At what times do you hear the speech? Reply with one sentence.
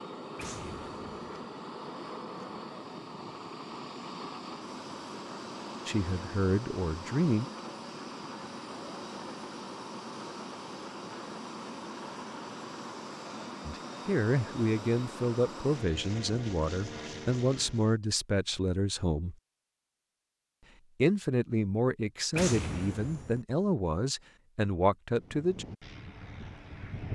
You can hear the speech from 5.8 to 7.5 s, from 13.7 to 19.4 s and from 21.0 to 25.6 s.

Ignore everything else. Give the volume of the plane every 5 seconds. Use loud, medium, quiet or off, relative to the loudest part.
loud, loud, loud, loud, off, loud.